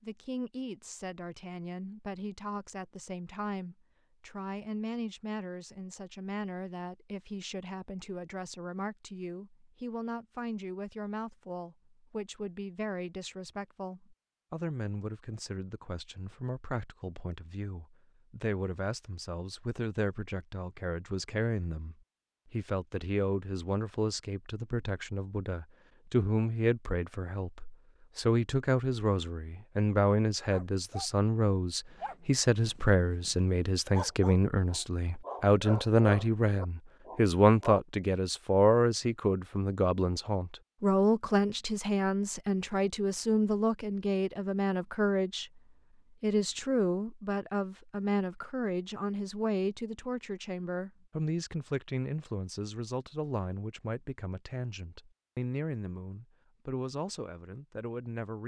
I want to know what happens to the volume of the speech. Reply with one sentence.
The volume of the speech goes up, then down.